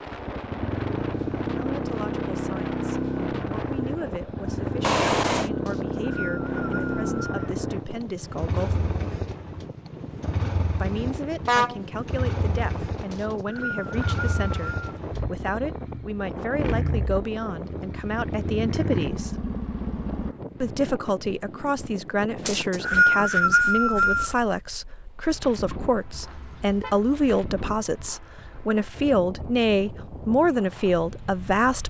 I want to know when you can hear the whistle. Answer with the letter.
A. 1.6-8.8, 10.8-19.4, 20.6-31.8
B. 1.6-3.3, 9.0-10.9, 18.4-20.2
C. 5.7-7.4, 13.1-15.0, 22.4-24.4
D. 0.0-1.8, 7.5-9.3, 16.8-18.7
C.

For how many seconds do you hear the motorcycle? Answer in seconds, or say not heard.
20 s.